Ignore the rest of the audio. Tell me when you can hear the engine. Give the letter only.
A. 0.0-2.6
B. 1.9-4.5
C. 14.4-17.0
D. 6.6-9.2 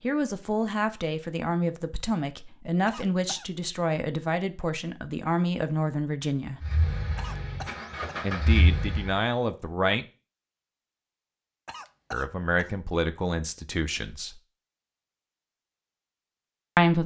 D.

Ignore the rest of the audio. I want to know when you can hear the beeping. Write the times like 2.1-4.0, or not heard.
not heard.